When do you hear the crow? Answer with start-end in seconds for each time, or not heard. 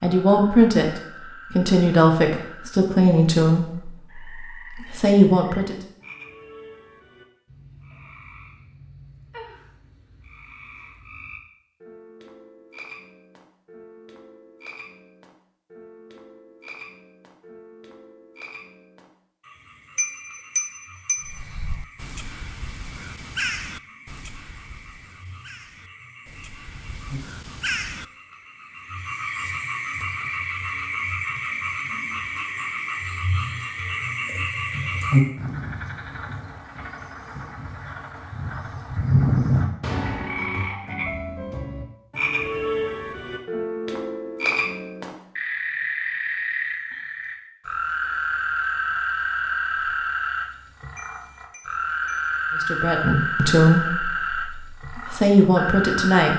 21.2-28.1.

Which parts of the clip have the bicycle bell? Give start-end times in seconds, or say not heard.
19.9-21.3, 51.0-52.3.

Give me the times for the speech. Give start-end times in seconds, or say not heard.
0.0-5.8, 52.6-56.3.